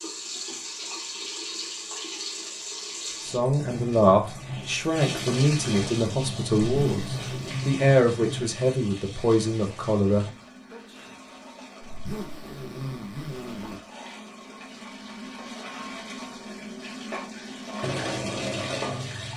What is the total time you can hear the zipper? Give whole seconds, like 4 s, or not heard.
3 s.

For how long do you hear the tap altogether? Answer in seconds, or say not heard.
19 s.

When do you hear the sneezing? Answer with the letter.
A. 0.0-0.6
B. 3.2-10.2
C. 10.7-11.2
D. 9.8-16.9
C.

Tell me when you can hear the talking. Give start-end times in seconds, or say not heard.
3.2-10.2.